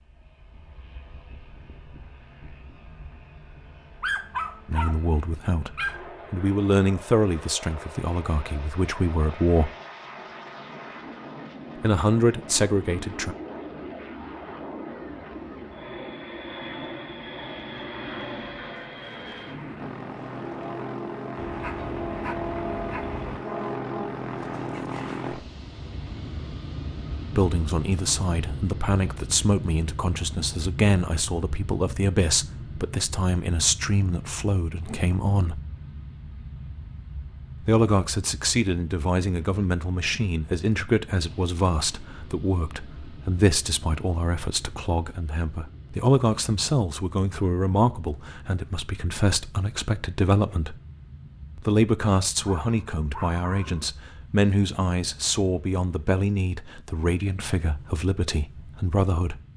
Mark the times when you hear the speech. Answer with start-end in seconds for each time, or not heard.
4.7-9.7, 11.8-13.3, 27.3-35.6, 37.6-50.8, 51.5-59.4.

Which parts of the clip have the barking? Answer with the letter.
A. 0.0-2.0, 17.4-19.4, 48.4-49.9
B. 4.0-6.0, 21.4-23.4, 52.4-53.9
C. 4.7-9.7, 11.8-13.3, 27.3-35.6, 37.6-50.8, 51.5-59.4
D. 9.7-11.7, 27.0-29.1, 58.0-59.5
B.